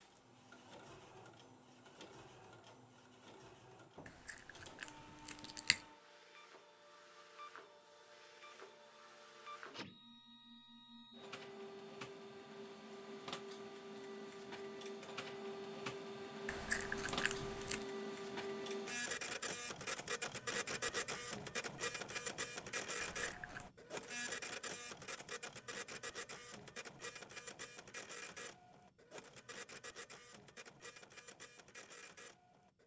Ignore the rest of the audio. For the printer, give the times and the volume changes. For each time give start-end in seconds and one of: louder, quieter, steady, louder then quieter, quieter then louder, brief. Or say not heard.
0.0-32.8 louder then quieter.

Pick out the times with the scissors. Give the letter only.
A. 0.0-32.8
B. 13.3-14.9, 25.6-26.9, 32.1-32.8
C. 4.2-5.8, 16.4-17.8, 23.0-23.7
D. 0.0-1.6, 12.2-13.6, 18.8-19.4
C.